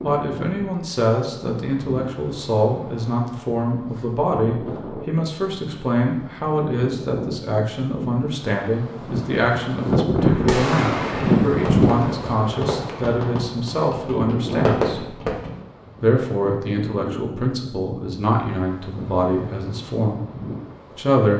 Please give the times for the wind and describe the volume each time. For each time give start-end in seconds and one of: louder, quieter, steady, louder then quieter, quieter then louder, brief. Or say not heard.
0.0-21.2 louder then quieter.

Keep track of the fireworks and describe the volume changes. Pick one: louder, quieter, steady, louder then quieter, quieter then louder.
quieter then louder.